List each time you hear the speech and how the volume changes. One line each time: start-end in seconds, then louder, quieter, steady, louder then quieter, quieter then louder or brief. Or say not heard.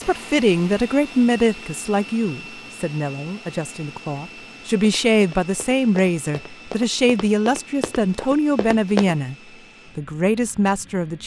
0.0-9.3 quieter then louder
9.9-11.2 brief.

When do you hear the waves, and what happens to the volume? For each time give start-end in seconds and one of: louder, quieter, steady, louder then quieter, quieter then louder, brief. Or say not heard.
not heard.